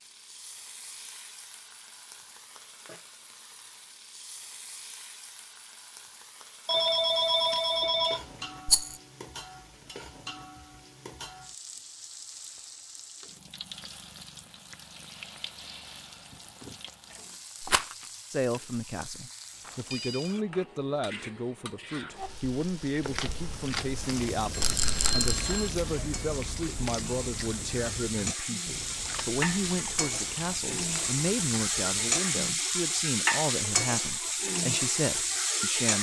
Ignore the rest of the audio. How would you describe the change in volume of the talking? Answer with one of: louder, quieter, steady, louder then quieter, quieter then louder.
steady.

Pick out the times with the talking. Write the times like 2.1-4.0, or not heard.
18.3-35.9.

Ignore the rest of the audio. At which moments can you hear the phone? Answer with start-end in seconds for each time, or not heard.
6.7-8.2, 19.6-20.4, 24.6-25.7.